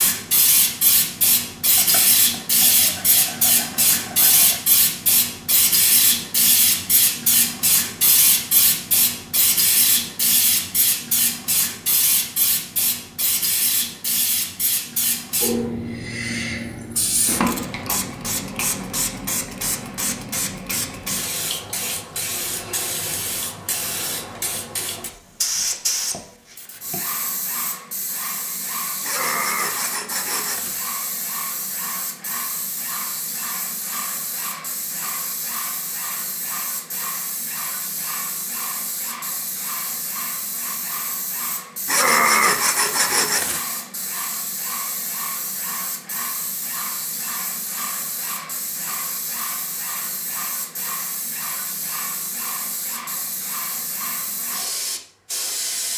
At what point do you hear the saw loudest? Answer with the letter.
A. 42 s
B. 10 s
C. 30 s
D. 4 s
A.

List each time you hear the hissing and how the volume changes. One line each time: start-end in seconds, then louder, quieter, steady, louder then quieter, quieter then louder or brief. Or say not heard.
0.0-55.9 quieter.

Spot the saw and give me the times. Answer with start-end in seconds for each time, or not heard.
1.8-4.6, 29.0-30.8, 41.9-43.6.